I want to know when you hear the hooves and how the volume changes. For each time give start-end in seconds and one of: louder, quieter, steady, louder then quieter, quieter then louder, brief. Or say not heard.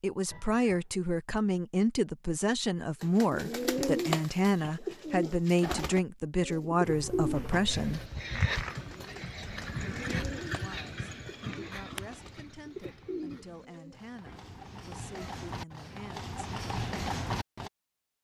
7.3-17.7 quieter then louder.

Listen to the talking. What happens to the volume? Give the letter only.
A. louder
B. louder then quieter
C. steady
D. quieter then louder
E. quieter
E.